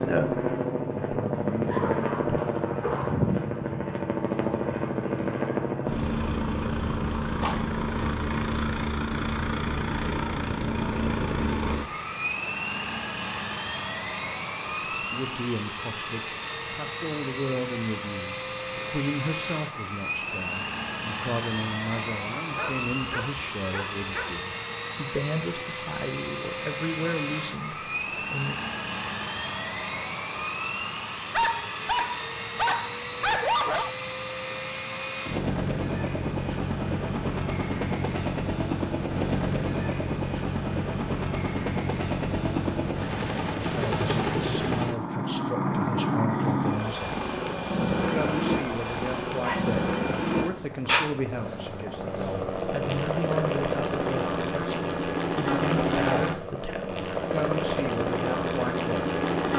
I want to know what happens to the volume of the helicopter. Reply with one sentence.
The loudness of the helicopter stays about the same.